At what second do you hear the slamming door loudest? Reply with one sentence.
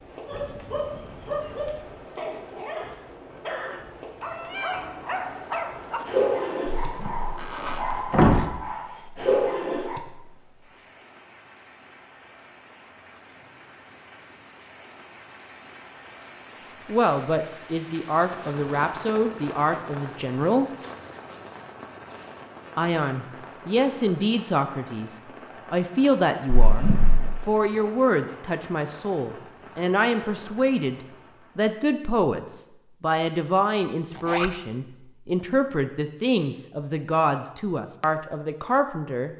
The volume of the slamming door peaks at 8 seconds.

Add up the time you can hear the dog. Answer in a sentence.
The dog can be heard for 10 seconds in total.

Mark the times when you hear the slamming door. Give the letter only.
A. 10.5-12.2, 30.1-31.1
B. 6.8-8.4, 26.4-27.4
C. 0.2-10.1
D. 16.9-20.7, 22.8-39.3
B.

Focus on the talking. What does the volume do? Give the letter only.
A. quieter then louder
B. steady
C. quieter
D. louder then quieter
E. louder
B.